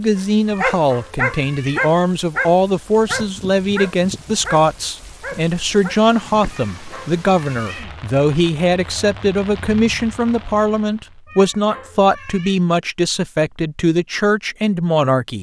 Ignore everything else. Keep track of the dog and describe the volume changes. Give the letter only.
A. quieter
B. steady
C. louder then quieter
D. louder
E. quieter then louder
A.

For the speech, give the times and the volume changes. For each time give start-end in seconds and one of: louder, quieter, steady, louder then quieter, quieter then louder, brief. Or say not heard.
0.0-15.3 steady.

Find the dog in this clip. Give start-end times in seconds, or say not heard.
0.6-6.0.